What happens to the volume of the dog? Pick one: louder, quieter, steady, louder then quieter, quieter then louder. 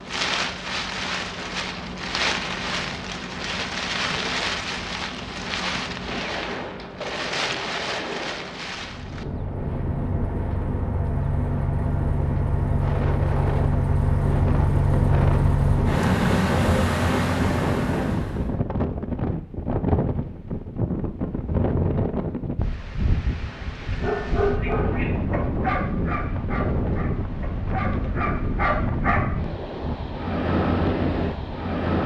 quieter then louder.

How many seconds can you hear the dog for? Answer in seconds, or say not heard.
5 s.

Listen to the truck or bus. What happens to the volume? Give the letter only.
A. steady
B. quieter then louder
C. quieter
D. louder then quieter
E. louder
E.